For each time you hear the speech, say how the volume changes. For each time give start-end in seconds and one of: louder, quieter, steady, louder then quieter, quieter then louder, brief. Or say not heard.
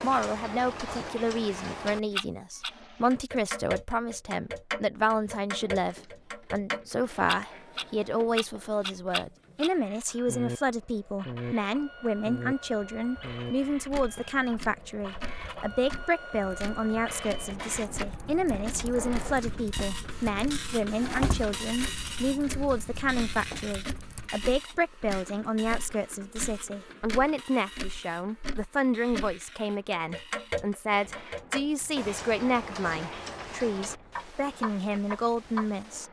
0.0-36.0 steady.